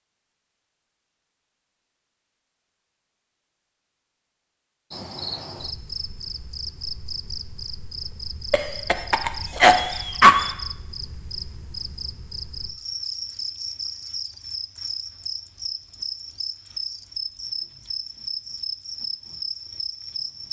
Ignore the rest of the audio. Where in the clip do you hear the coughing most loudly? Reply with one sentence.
The volume of the coughing peaks at 10 seconds.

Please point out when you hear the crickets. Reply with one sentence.
You can hear the crickets from 4.9 to 20.4 s.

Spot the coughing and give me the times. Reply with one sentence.
You can hear the coughing from 8.5 to 10.5 s.